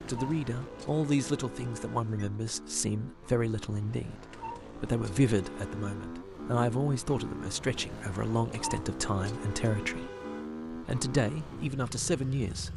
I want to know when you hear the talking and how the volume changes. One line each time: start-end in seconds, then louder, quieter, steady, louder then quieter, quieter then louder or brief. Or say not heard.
0.1-10.1 steady
10.7-12.7 brief.